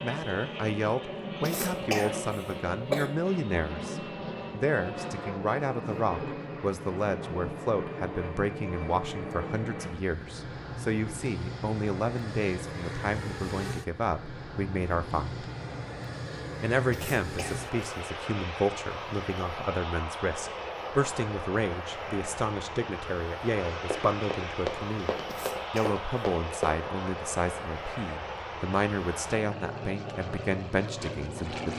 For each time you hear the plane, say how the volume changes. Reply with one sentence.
The plane can be heard from 0.0 to 31.7 s, at a steady volume.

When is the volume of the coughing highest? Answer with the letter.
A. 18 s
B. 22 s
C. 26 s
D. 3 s
D.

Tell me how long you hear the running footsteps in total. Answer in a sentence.
You can hear the running footsteps for 3 seconds altogether.